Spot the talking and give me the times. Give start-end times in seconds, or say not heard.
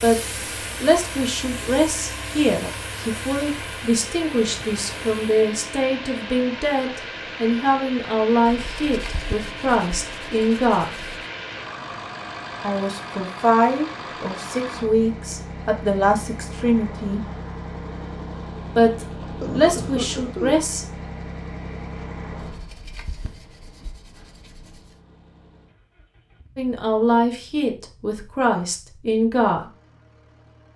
0.0-10.9, 12.6-17.2, 18.8-20.9, 26.6-29.7.